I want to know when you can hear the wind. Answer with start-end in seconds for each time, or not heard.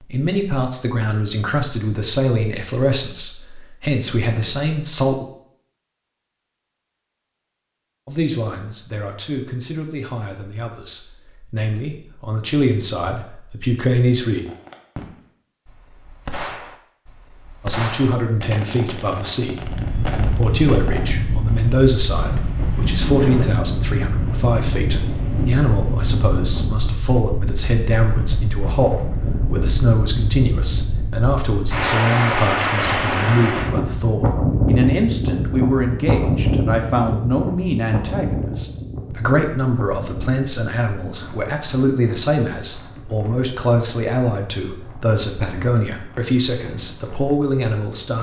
19.5-48.1.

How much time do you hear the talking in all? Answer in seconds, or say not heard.
42 s.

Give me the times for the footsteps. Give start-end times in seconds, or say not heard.
not heard.